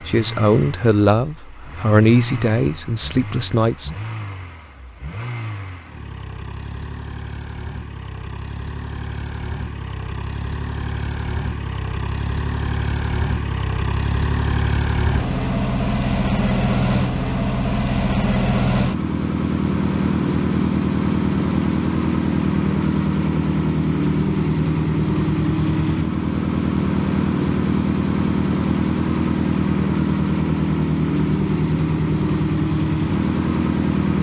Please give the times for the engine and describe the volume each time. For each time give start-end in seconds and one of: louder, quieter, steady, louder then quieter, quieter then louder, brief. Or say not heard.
0.0-34.1 louder.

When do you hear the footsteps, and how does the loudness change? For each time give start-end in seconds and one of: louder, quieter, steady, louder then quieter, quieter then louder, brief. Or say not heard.
not heard.